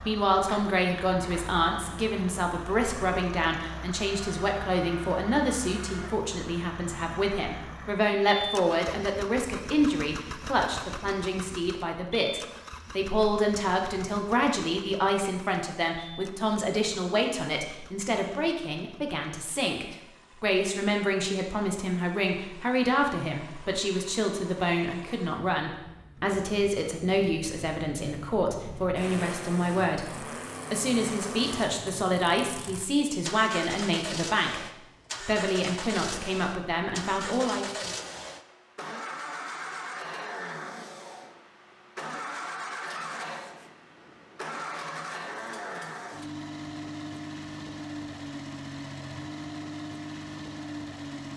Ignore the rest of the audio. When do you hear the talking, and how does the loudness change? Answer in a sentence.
You can hear the talking from 0.1 to 37.7 s, at a steady volume.